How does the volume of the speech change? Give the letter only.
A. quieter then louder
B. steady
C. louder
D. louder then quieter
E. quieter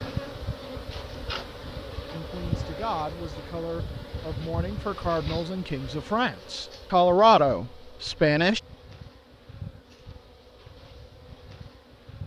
C.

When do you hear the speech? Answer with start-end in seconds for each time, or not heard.
2.1-8.6.